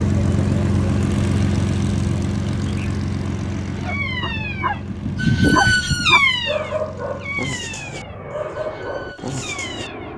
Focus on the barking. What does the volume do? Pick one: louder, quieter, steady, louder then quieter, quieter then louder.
louder then quieter.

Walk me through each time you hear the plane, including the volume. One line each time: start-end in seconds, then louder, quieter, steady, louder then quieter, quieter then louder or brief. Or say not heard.
0.0-10.1 quieter.